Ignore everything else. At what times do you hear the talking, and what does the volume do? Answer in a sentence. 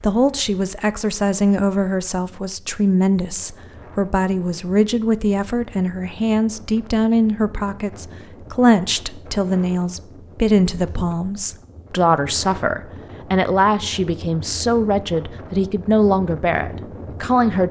The talking can be heard from 0.0 to 17.6 s, at a steady volume.